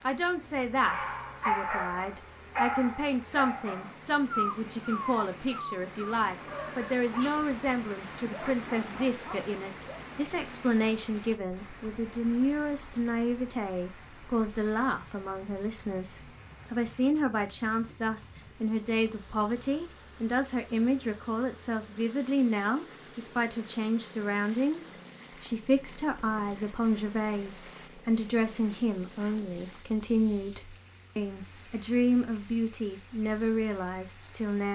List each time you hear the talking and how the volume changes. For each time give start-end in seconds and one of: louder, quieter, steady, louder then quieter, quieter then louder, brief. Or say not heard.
0.0-34.7 steady.